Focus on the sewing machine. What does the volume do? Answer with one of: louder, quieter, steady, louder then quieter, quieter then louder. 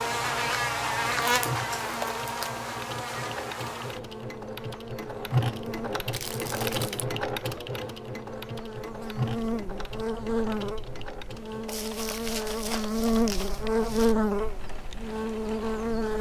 louder then quieter.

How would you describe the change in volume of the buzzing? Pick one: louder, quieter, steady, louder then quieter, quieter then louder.
quieter then louder.